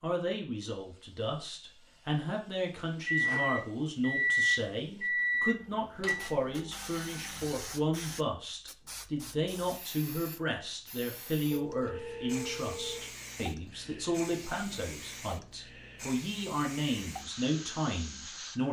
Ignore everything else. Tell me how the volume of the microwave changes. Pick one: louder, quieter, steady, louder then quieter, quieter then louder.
louder then quieter.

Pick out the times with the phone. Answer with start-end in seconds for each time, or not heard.
11.5-13.1.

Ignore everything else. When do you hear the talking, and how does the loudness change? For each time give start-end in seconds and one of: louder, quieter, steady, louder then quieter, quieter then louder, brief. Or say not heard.
0.0-18.6 steady.